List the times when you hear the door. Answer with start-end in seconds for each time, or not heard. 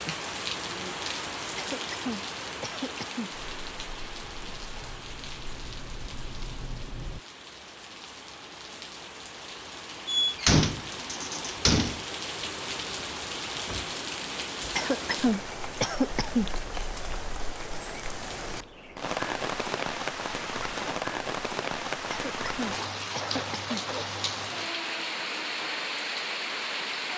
10.1-12.1.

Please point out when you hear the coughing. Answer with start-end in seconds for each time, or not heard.
1.6-3.3, 14.8-16.5, 22.1-23.9.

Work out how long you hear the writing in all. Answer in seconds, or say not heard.
4 s.